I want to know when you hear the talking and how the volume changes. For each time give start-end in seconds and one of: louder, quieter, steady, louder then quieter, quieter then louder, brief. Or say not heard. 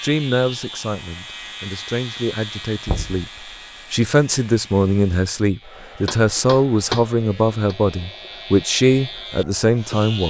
0.0-10.2 louder.